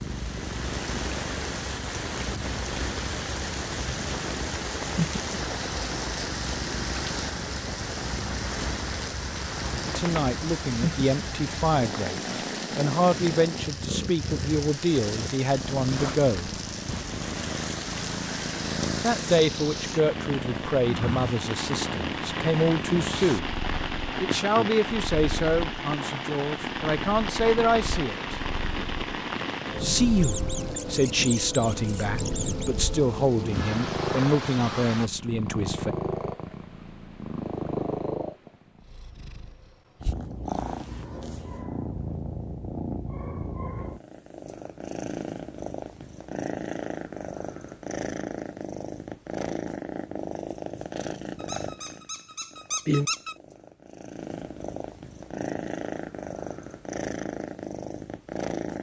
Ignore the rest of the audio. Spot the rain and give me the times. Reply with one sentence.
You can hear the rain from 0.0 to 35.1 s.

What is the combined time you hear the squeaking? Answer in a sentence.
The squeaking can be heard for 5 seconds in total.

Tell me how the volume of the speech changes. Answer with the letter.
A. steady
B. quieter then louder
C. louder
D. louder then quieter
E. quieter
A.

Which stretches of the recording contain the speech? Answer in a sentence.
You can hear the speech from 9.8 to 16.6 s, from 19.0 to 23.5 s, from 24.2 to 28.4 s and from 29.8 to 36.0 s.